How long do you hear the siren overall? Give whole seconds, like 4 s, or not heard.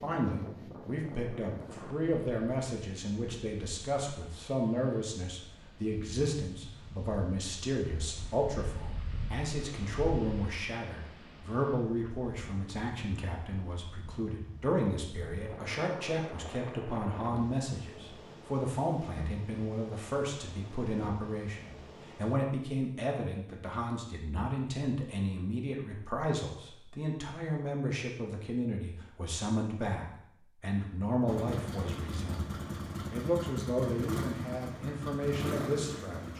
not heard.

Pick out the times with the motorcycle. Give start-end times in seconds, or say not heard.
31.2-36.3.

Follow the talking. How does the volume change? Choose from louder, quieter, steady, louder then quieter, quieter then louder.
steady.